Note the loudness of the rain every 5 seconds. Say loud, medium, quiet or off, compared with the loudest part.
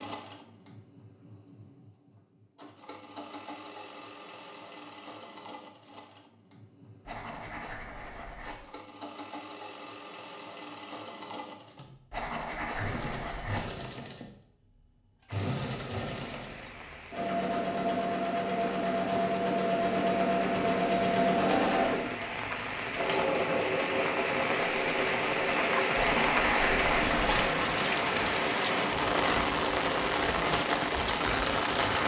off, off, off, quiet, medium, loud, loud.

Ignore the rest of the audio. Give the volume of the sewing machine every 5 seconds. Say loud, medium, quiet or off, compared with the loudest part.
quiet, quiet, quiet, loud, loud, medium, off.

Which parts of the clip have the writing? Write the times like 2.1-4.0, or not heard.
7.0-8.7, 12.1-13.7, 25.9-27.4.